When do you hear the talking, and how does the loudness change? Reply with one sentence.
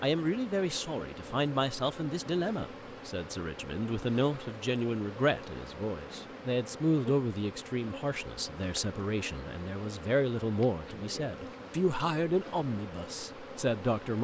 You can hear the talking from 0.0 to 14.2 s, at a steady volume.